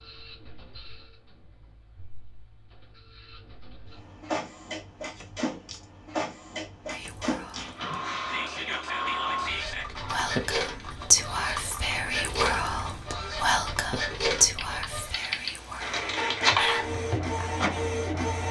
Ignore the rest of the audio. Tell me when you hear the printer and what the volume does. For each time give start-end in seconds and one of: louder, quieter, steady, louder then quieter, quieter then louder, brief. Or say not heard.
0.0-18.4 louder.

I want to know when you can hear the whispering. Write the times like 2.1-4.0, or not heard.
6.9-17.6.